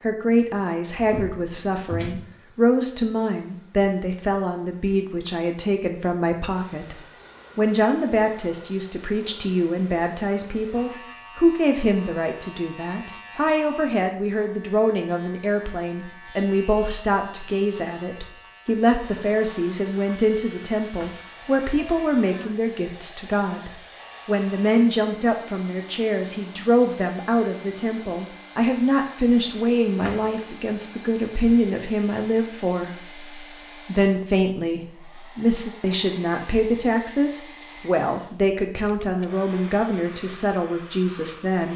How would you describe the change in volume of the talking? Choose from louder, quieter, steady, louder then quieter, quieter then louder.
steady.